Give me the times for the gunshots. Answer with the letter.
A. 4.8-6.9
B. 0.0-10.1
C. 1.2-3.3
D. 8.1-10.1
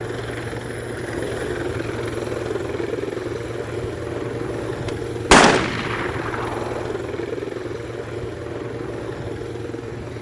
A.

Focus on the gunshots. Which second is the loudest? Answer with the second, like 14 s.
5 s.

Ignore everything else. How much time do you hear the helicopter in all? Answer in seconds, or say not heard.
10 s.